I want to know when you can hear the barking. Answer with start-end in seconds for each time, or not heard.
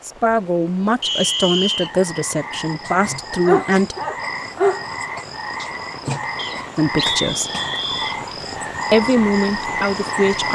3.5-4.8.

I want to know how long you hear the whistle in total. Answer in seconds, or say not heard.
3 s.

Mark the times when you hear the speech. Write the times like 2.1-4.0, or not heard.
0.0-4.0, 6.8-7.5, 8.9-10.5.